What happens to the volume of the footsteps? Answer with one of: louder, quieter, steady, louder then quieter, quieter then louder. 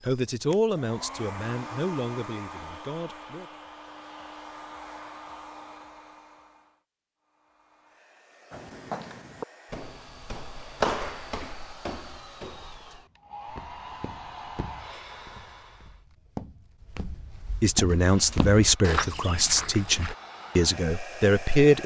quieter then louder.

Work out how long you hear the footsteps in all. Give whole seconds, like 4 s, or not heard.
12 s.